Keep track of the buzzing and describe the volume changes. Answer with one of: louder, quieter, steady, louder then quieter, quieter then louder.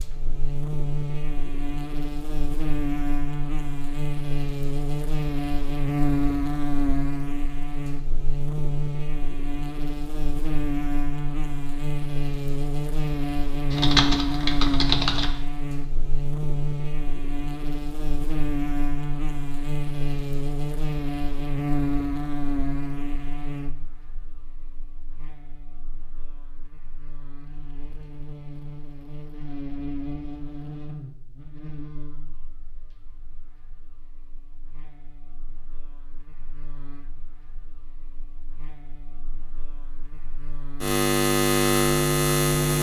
quieter then louder.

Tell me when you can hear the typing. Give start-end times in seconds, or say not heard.
13.7-15.3.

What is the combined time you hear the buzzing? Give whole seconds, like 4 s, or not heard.
43 s.